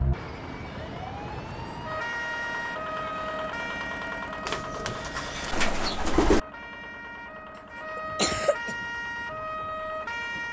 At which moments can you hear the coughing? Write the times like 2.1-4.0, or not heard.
8.0-8.8.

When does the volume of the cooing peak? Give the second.
6 s.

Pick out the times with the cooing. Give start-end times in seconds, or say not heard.
4.5-6.4.